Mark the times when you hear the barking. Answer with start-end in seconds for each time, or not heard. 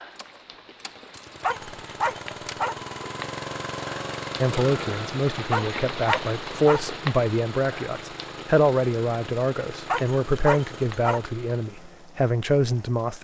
1.4-2.8, 5.5-6.8, 9.8-11.2.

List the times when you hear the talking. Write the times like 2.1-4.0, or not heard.
4.4-13.1.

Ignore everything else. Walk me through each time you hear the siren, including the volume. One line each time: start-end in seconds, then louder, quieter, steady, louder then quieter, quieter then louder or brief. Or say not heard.
not heard.